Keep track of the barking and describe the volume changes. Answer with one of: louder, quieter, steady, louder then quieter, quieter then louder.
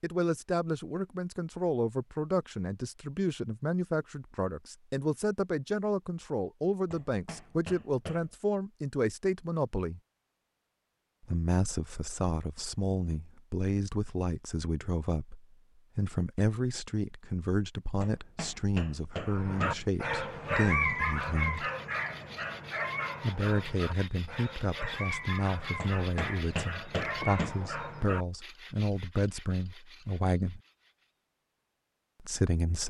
quieter.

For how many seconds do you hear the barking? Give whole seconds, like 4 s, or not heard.
9 s.